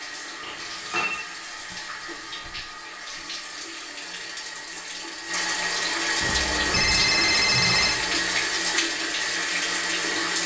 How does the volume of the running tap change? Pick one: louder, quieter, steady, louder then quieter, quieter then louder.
louder.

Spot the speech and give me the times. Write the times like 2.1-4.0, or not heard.
not heard.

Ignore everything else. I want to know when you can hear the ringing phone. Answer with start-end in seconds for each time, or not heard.
0.4-1.2, 6.2-8.0.